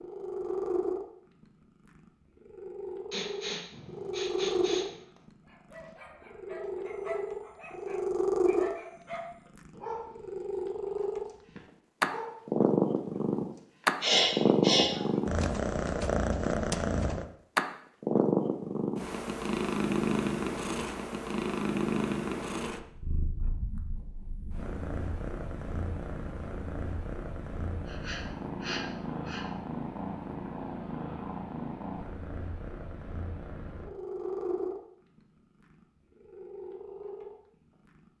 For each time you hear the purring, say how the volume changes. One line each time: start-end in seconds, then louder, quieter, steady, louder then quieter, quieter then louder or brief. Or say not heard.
0.0-38.0 louder then quieter.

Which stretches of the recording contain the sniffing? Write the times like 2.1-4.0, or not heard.
3.1-5.0, 14.0-14.9, 27.9-29.4.